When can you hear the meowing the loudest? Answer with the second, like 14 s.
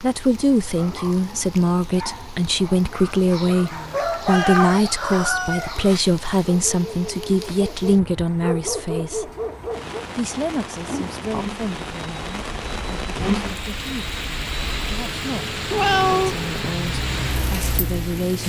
16 s.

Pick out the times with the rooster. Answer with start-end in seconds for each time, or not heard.
3.0-6.5.